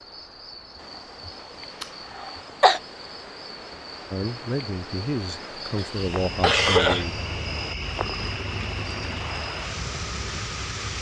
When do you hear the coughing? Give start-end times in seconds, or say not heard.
1.8-2.8, 5.8-7.0.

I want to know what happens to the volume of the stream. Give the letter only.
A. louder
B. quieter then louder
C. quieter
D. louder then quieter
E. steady
A.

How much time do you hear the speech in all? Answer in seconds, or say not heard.
3 s.